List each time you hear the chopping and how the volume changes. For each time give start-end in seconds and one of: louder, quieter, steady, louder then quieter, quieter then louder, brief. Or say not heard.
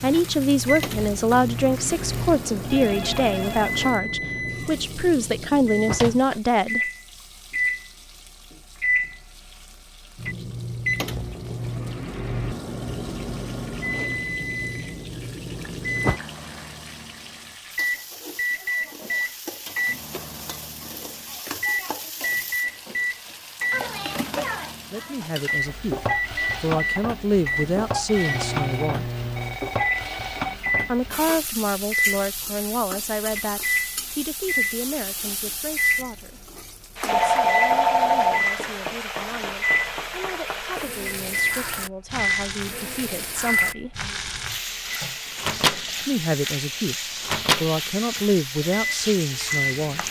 not heard.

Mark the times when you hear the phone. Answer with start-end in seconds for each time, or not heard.
2.6-3.8, 28.1-30.6, 37.0-38.5.